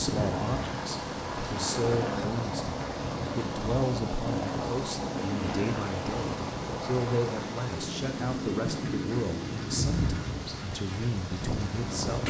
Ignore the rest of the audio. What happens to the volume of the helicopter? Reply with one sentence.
The loudness of the helicopter stays about the same.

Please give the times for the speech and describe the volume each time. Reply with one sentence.
The speech can be heard from 0.0 to 12.2 s, at a steady volume.